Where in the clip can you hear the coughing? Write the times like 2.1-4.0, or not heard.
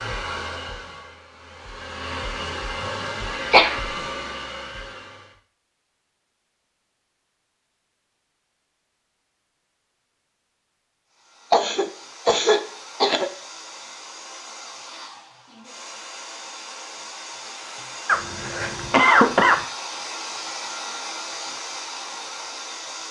3.5-4.0, 11.5-13.3, 18.1-19.6.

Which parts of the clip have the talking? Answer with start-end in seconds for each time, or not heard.
not heard.